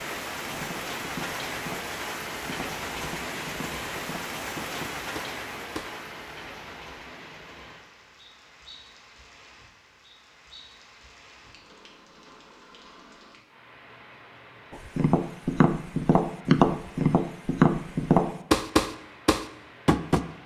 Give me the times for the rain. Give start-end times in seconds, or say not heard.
0.0-20.4.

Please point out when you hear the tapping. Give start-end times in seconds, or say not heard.
0.4-5.9, 14.7-20.2.